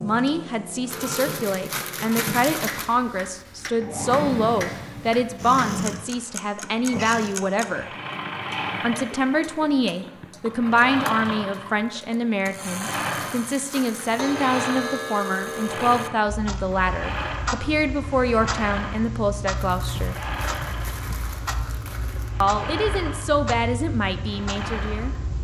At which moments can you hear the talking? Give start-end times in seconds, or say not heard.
0.0-7.8, 8.8-20.1, 22.4-25.1.